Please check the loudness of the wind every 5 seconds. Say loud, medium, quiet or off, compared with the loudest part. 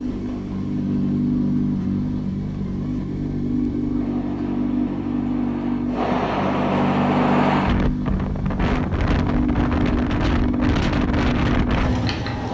quiet, loud, loud.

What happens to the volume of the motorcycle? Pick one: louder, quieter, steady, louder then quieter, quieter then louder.
steady.